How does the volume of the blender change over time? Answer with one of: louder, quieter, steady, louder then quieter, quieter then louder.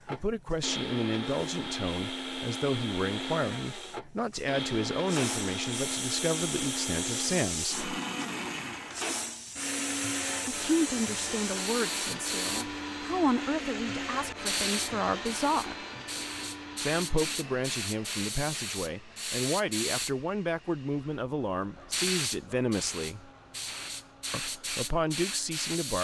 quieter.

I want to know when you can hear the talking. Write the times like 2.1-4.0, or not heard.
0.1-7.8, 10.4-15.8, 16.8-23.3, 24.3-25.9.